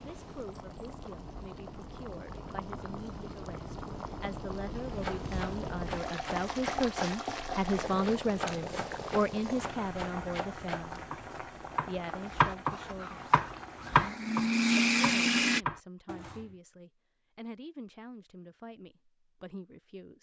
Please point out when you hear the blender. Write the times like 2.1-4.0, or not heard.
12.9-15.6.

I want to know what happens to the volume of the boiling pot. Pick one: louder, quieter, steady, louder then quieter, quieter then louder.
louder then quieter.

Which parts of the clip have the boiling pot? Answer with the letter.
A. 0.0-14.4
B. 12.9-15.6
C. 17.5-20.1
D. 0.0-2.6
A.